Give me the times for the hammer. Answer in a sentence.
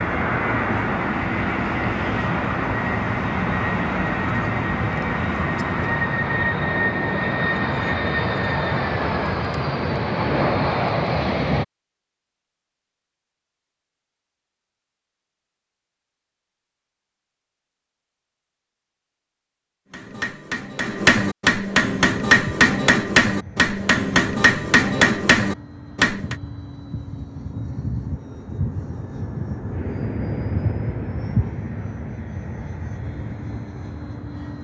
The hammer can be heard from 19.9 to 26.4 s.